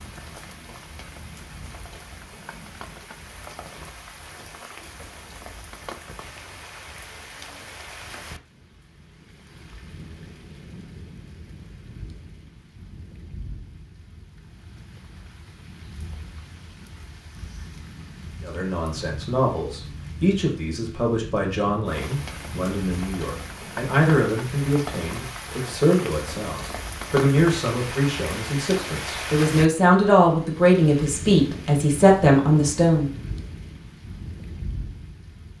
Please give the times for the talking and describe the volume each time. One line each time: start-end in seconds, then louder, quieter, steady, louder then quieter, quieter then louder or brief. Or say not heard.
18.4-33.1 louder.